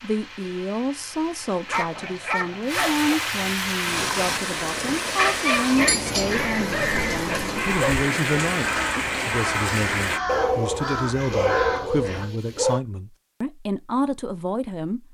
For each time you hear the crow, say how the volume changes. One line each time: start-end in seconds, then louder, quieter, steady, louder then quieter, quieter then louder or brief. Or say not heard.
6.3-12.2 steady.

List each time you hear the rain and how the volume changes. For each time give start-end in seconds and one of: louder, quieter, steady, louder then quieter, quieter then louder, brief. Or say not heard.
0.0-10.2 louder.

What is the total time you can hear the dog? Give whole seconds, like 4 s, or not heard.
7 s.